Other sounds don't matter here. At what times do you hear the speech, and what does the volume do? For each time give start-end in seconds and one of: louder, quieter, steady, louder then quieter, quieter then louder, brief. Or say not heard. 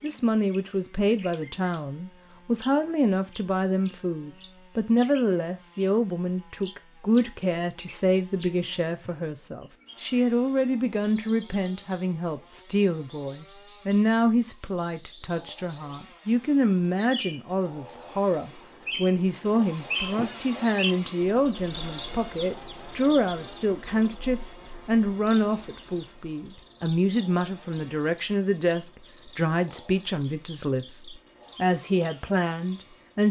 0.0-33.2 steady.